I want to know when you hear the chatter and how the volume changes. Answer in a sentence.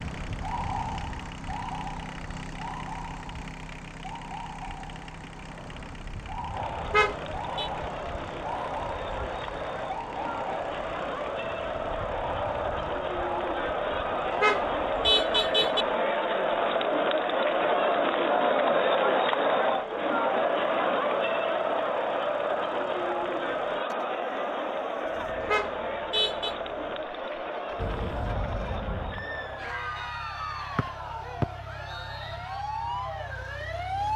You can hear the chatter from 6.5 to 34.1 s, getting louder then quieter.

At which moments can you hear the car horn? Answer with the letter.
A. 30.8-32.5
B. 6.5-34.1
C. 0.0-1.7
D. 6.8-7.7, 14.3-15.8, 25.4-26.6
D.